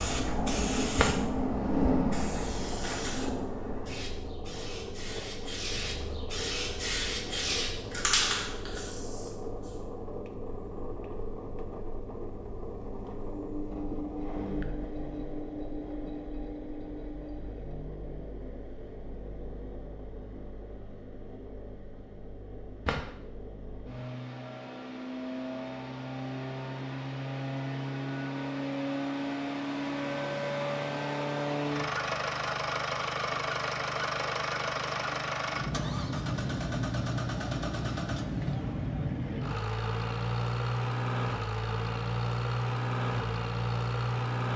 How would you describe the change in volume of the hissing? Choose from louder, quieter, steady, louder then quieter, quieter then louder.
quieter then louder.